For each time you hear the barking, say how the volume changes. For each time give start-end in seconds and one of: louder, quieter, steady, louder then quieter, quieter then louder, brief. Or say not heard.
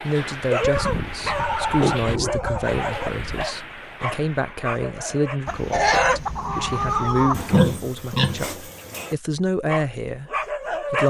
0.1-5.4 quieter
9.7-11.0 brief.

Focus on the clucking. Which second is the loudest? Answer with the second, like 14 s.
6 s.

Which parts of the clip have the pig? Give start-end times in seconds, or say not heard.
0.6-3.5, 7.3-9.2.